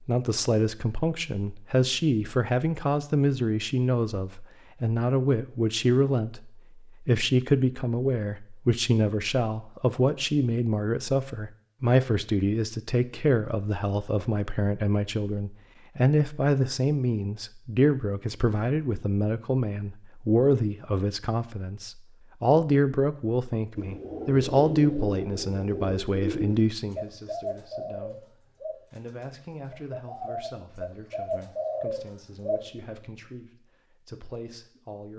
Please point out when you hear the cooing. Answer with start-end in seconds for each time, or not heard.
23.8-32.7.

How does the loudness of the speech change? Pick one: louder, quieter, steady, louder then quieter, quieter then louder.
quieter.